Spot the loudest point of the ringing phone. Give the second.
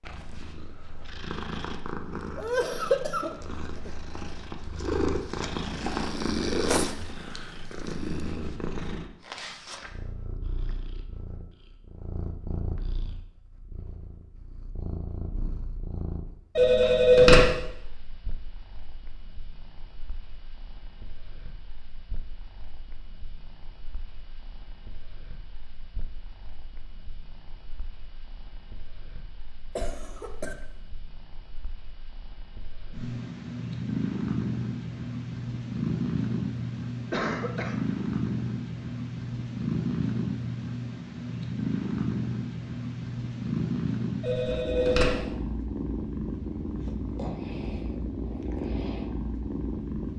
17 s.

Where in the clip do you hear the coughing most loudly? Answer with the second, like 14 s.
3 s.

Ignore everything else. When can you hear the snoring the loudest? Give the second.
7 s.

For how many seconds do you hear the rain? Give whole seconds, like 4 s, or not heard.
not heard.